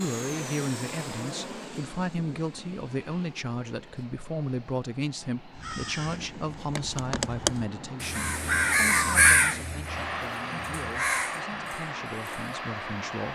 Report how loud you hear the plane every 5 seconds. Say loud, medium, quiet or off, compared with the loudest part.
medium, medium, loud.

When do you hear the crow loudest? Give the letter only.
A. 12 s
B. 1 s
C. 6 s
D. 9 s
D.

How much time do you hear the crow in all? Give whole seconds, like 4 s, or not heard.
7 s.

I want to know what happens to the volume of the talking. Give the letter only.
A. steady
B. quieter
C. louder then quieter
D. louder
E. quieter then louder
B.